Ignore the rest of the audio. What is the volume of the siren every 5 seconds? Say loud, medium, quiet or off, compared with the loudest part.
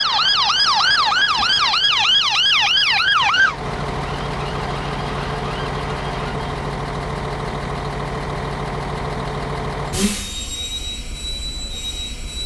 loud, quiet, off.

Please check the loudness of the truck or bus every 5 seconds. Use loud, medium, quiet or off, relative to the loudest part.
medium, loud, loud.